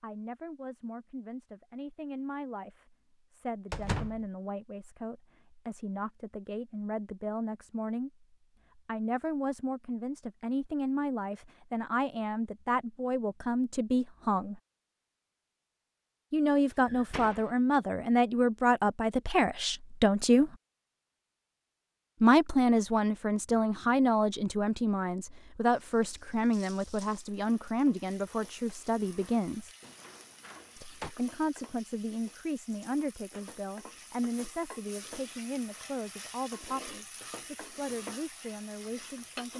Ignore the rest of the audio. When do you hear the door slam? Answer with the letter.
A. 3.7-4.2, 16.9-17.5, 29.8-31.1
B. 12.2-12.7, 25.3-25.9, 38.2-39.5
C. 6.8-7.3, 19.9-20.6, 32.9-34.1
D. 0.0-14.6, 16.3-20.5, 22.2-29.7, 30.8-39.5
A.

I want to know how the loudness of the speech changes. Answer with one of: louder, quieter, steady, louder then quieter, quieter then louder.
louder then quieter.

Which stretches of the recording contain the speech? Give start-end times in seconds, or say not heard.
0.0-14.6, 16.3-20.5, 22.2-29.7, 30.8-39.5.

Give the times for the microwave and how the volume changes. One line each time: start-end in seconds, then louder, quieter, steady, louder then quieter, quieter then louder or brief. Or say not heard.
not heard.